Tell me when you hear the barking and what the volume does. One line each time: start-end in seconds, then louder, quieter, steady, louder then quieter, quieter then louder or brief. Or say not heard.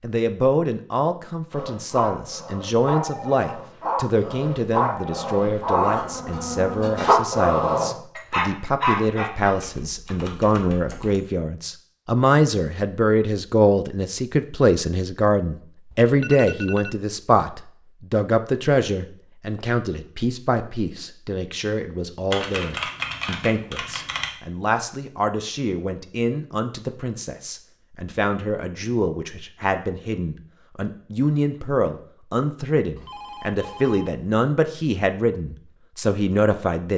1.5-9.6 louder.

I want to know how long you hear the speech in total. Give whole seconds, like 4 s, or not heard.
37 s.